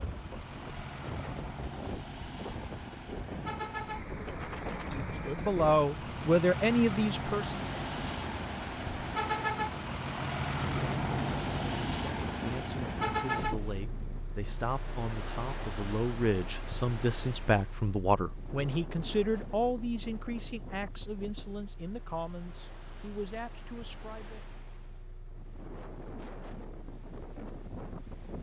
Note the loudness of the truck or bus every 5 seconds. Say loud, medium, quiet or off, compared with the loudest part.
medium, loud, loud, quiet, quiet, quiet.